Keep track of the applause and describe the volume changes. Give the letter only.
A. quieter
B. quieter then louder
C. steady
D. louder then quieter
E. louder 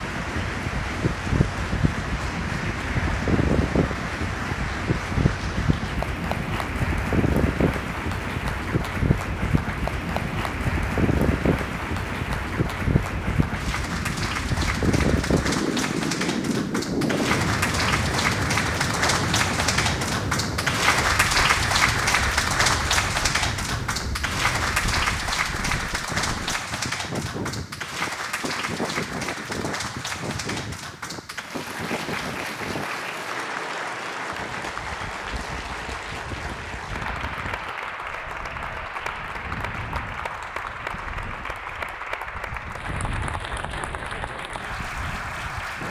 D.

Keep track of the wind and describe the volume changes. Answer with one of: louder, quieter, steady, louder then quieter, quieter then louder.
quieter.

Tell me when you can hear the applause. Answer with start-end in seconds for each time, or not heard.
0.0-45.8.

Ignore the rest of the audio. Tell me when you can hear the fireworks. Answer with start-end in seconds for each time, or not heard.
not heard.